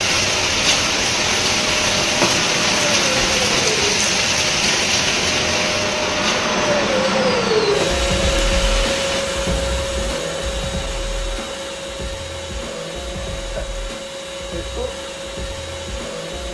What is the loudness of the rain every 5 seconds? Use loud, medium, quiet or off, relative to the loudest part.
loud, medium, off, off.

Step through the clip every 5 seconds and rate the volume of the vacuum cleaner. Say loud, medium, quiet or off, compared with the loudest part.
medium, loud, medium, medium.